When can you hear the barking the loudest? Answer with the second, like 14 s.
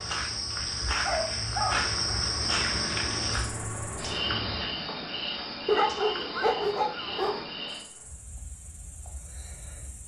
6 s.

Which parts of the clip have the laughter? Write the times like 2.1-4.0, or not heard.
not heard.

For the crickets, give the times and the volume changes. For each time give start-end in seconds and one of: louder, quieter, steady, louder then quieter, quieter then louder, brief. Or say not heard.
0.0-10.0 quieter.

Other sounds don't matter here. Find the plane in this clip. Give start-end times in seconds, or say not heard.
0.0-4.8.